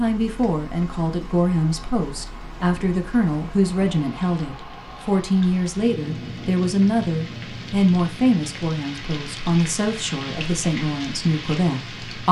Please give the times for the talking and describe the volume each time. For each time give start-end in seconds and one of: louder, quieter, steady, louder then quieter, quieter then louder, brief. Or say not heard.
0.0-12.2 steady.